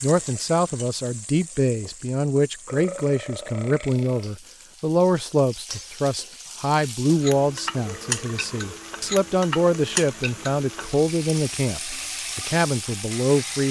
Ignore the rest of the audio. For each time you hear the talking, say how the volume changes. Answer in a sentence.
The talking can be heard from 0.0 to 13.6 s, at a steady volume.